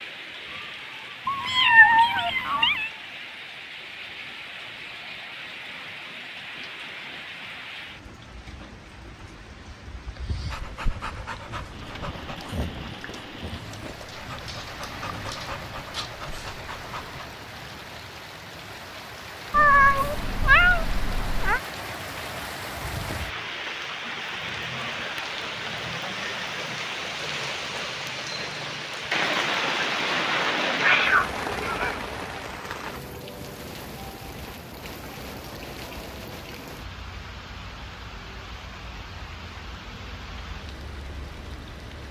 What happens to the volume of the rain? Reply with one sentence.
The loudness of the rain goes up, then down.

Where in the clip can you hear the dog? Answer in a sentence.
The dog can be heard from 10.5 to 17.4 s.